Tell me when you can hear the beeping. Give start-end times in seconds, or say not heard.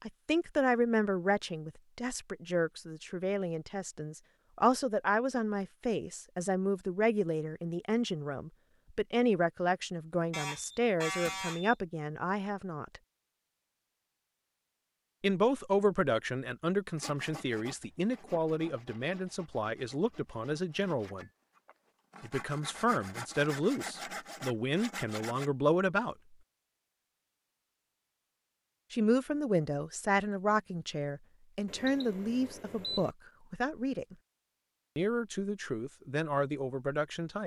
10.3-11.8, 31.6-33.1.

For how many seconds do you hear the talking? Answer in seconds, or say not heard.
31 s.